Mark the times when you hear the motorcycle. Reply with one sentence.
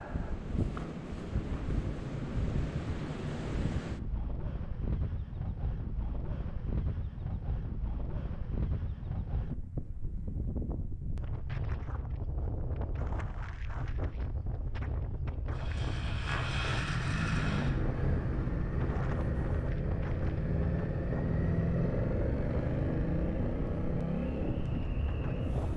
The motorcycle can be heard from 15.5 to 25.7 s.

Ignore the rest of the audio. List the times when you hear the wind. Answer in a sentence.
The wind can be heard from 0.0 to 25.7 s.